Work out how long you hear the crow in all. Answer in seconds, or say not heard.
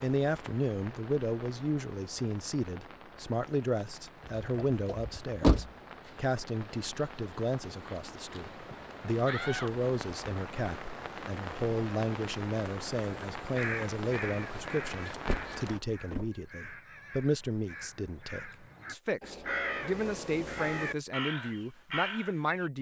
9 s.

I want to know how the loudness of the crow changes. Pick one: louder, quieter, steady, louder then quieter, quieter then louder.
quieter then louder.